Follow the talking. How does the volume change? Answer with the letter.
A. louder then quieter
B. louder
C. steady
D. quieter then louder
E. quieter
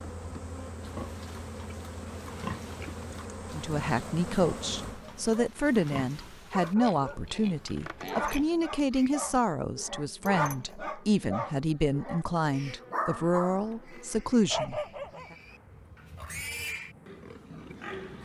C.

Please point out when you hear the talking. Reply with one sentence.
You can hear the talking from 3.5 to 15.3 s.